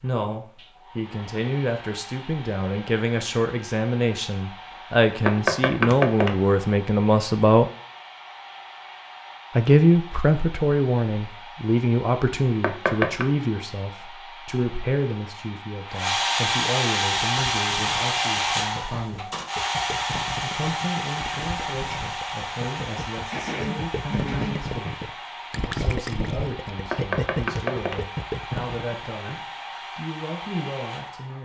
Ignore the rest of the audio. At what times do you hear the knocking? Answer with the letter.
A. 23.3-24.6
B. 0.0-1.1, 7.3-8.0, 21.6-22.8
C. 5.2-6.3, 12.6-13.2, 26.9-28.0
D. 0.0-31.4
C.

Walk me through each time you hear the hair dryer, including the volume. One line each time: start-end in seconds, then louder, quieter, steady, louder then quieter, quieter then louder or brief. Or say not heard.
0.0-31.4 louder then quieter.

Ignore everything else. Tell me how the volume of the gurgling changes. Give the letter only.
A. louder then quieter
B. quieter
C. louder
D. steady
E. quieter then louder
C.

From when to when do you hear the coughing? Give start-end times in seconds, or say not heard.
23.3-24.6.